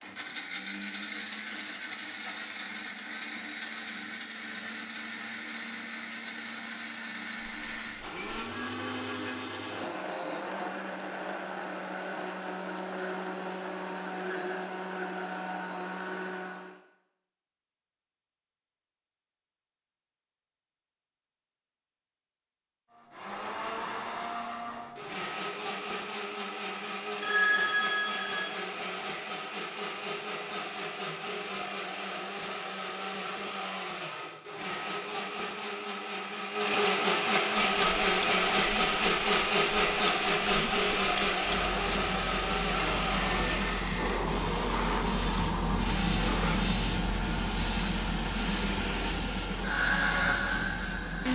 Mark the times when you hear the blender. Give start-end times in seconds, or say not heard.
0.0-16.8, 22.9-51.3.